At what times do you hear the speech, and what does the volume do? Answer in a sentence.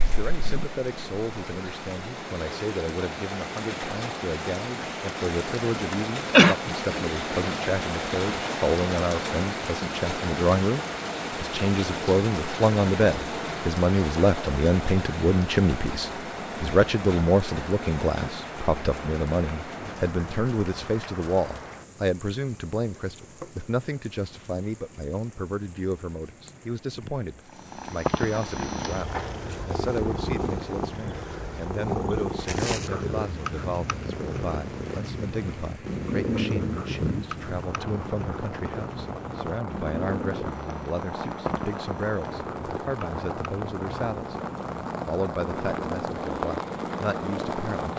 The speech can be heard from 0.0 to 44.4 s, getting louder then quieter; and briefly from 45.0 to 47.9 s.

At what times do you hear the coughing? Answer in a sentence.
The coughing can be heard from 5.9 to 6.5 s.